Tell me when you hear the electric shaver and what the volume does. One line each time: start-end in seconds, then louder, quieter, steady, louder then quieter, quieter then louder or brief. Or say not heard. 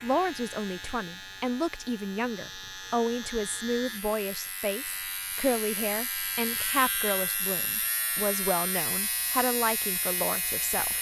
0.0-10.9 louder.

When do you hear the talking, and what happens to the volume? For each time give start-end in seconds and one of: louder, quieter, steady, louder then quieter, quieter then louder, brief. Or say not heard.
0.0-10.9 steady.